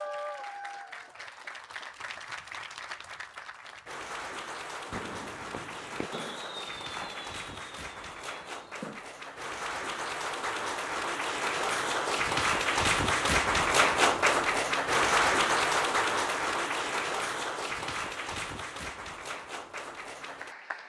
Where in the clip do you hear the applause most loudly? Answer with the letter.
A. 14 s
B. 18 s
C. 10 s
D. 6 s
A.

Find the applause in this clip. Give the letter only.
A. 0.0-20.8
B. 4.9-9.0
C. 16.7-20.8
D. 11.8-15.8
A.